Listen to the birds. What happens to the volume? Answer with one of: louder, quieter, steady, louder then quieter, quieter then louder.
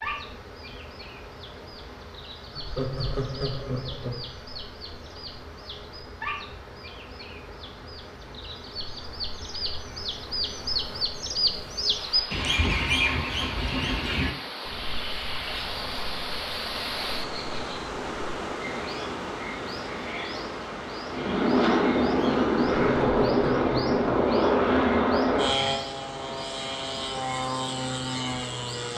louder then quieter.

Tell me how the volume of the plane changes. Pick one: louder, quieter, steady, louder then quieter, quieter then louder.
quieter.